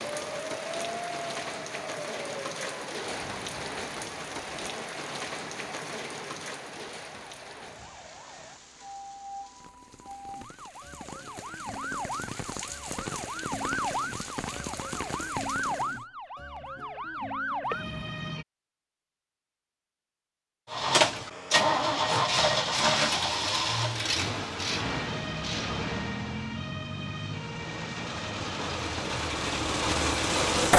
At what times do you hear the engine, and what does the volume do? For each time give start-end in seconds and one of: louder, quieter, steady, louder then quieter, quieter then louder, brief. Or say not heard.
20.7-30.7 quieter then louder.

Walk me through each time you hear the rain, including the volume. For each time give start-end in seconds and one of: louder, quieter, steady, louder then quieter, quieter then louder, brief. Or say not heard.
0.0-16.1 quieter then louder.